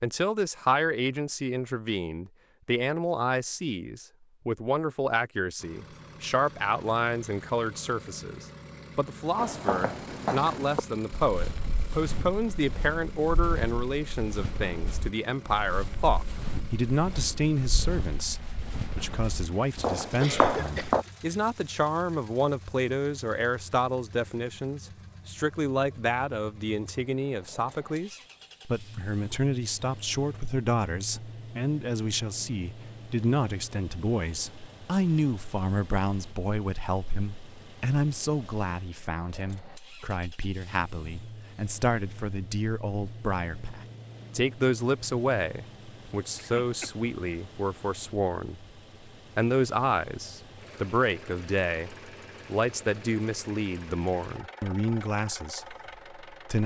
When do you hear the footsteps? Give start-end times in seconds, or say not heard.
9.3-21.1.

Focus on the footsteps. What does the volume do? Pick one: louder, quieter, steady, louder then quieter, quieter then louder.
quieter then louder.